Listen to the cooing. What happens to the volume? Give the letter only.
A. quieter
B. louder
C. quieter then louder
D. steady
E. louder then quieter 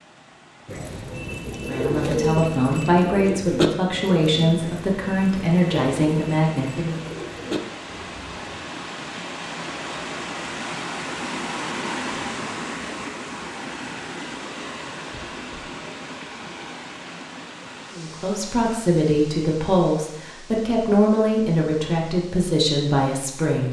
A.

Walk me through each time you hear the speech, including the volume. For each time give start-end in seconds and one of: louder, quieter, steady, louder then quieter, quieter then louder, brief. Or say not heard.
1.6-7.0 steady
17.9-23.6 steady.